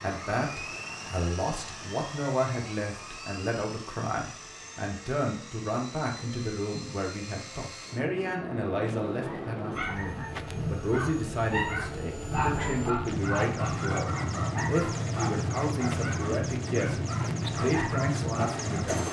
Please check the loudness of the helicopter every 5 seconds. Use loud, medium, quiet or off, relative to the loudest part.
medium, medium, loud, loud.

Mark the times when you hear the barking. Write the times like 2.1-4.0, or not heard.
8.8-18.8.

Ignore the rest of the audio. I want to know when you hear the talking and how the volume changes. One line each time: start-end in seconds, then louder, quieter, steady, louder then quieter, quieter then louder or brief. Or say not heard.
0.0-19.0 steady.